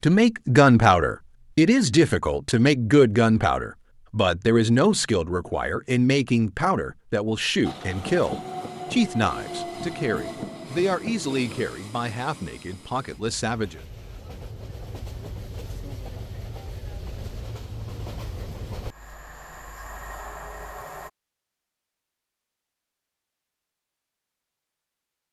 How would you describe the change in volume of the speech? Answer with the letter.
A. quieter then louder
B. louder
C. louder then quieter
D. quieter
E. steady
D.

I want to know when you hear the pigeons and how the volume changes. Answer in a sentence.
The pigeons can't be heard in this clip.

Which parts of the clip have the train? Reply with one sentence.
You can hear the train from 7.6 to 21.1 s.